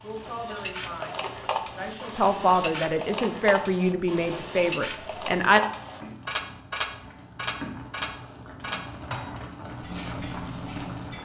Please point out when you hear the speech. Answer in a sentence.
You can hear the speech from 0.0 to 5.6 s.